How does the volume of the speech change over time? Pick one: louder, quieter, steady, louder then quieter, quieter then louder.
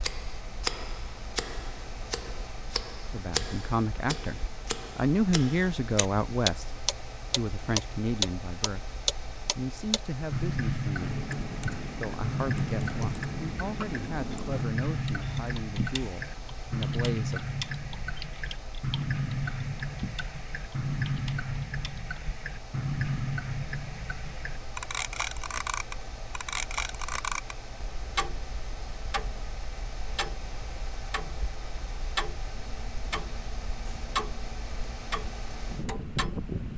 quieter.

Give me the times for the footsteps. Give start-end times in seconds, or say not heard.
not heard.